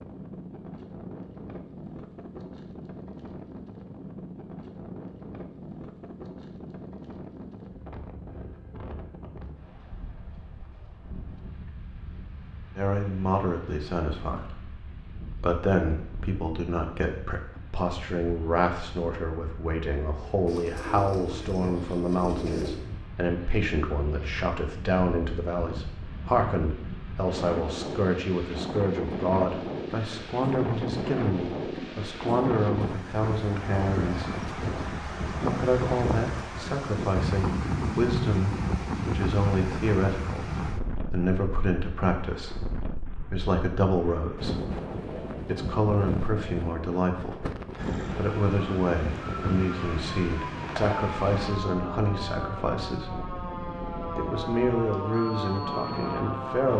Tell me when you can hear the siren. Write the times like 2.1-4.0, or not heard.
47.8-56.7.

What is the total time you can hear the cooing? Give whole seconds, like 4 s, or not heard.
2 s.